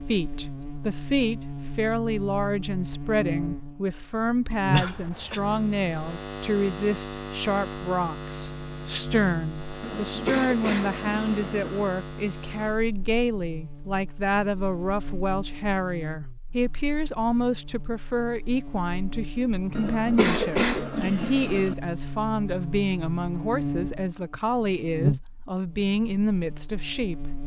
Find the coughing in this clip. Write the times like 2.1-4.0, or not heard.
4.7-5.4, 9.8-11.8, 19.8-21.8.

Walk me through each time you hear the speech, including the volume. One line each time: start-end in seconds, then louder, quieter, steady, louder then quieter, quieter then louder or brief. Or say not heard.
0.1-27.4 steady.